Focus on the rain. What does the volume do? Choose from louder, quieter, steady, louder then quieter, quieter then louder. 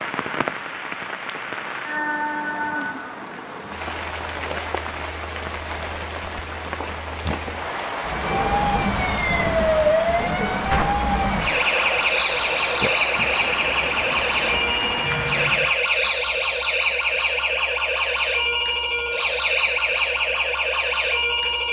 steady.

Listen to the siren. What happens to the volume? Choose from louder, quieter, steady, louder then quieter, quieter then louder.
steady.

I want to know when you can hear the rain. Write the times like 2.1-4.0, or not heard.
0.0-15.8.